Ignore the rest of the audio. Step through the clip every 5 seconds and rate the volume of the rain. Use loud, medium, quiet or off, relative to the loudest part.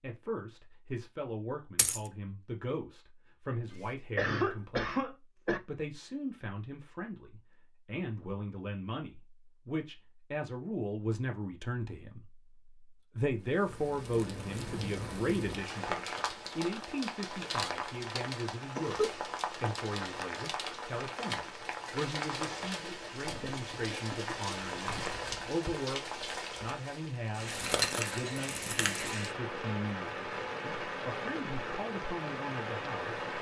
off, off, medium, loud, loud, loud, loud.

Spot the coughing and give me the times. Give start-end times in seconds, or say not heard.
3.7-5.6, 18.8-19.3, 23.2-25.8.